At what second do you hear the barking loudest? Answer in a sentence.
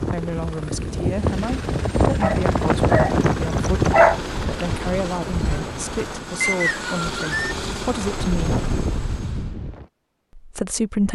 The volume of the barking peaks at 4 seconds.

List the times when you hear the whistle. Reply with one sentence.
The whistle can be heard from 6.4 to 7.5 s.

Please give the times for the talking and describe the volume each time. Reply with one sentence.
The talking can be heard from 0.0 to 8.6 s, at a steady volume; and briefly from 10.3 to 11.1 s.